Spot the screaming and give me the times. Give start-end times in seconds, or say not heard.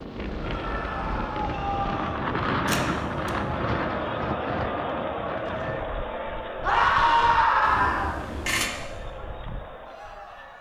0.4-2.2, 6.6-8.2.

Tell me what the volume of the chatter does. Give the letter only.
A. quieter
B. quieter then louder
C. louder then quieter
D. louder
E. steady
C.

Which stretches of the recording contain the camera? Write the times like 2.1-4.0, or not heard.
2.6-3.3, 7.6-8.7.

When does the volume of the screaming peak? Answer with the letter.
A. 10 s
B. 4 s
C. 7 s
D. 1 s
C.